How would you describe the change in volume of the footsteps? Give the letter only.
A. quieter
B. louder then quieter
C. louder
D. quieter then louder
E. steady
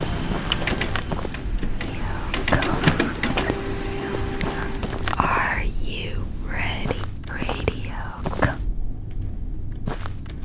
E.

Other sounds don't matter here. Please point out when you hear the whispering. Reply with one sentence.
The whispering can be heard from 1.8 to 8.6 s.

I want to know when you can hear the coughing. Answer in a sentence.
The coughing can be heard from 2.6 to 3.6 s.